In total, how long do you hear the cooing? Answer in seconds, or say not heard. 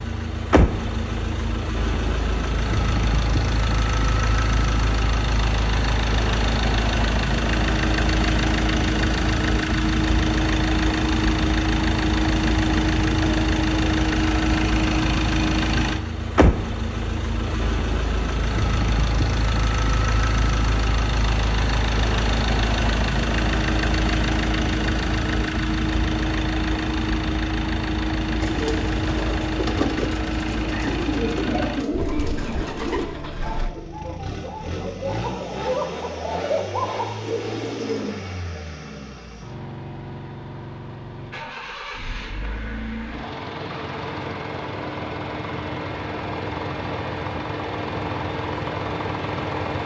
10 s.